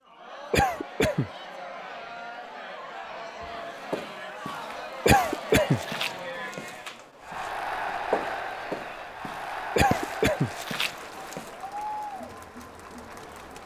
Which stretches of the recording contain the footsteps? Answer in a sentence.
You can hear the footsteps from 3.8 to 11.5 s.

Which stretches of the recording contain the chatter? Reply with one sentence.
You can hear the chatter from 0.0 to 13.6 s.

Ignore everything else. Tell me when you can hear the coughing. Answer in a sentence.
The coughing can be heard from 0.5 to 1.3 s, from 5.0 to 5.8 s and from 9.8 to 10.5 s.